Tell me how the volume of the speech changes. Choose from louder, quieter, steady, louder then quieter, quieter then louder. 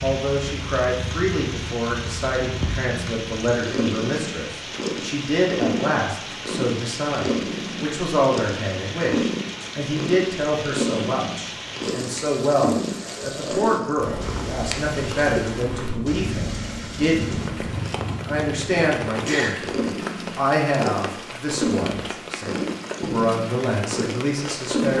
steady.